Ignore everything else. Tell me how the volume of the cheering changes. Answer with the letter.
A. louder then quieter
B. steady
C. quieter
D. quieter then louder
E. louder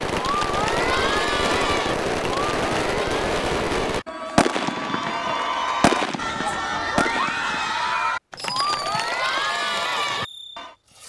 D.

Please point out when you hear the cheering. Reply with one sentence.
You can hear the cheering from 0.0 to 10.8 s.